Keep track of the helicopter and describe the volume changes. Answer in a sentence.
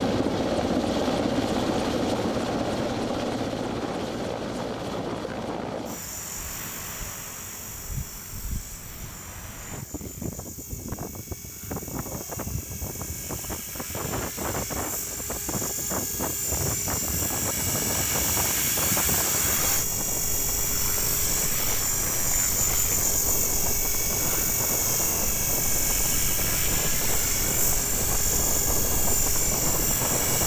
The loudness of the helicopter goes down, then up.